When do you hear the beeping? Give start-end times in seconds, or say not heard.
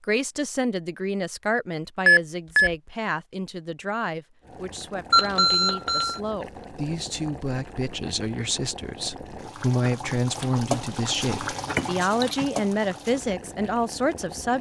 2.0-2.8, 5.1-6.2, 11.3-12.4.